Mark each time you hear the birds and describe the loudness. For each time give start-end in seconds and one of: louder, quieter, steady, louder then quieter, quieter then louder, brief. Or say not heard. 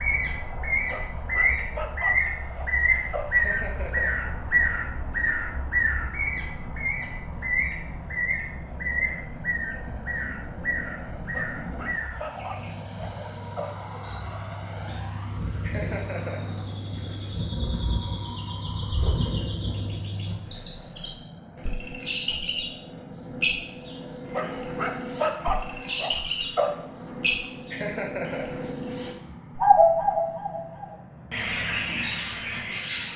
0.0-33.1 quieter then louder.